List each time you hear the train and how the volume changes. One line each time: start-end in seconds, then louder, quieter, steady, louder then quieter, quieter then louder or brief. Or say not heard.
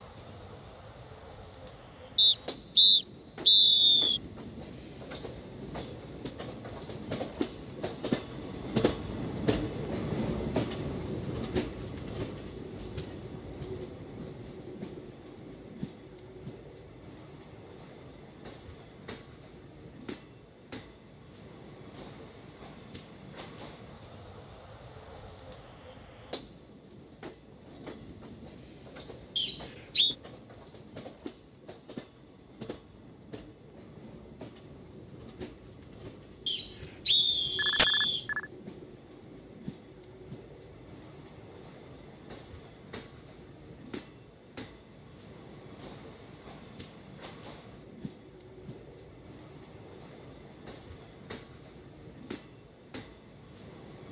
0.0-54.0 quieter.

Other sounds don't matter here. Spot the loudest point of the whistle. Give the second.
4 s.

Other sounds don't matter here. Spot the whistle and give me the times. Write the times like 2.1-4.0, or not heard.
2.1-4.2, 29.4-30.1, 36.5-38.2.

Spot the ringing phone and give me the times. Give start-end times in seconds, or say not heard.
37.5-38.5.